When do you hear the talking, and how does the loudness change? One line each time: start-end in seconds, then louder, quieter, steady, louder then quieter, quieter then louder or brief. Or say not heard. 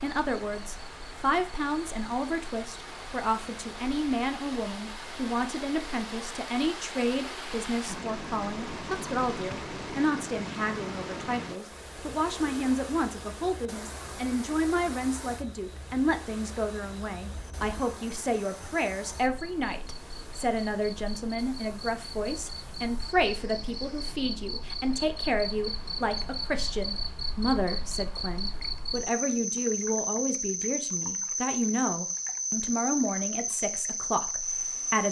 0.0-35.0 steady.